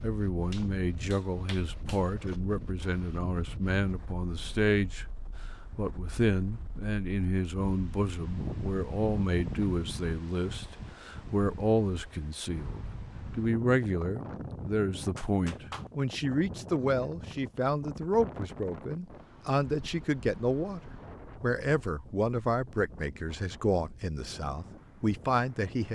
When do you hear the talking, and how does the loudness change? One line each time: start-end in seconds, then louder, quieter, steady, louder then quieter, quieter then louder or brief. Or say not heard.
0.0-5.0 steady
5.8-25.9 steady.